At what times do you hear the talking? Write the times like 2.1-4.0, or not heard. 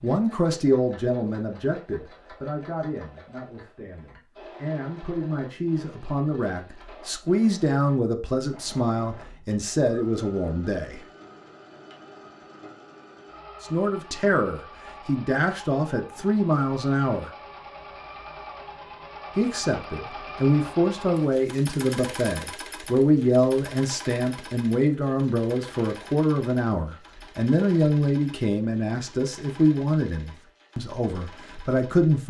0.0-11.0, 13.6-17.3, 19.4-32.2.